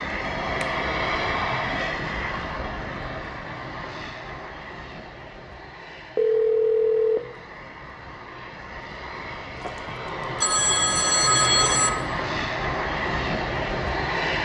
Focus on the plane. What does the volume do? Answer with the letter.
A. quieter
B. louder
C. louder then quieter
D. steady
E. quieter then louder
E.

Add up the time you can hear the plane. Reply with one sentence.
The plane can be heard for 14 seconds in total.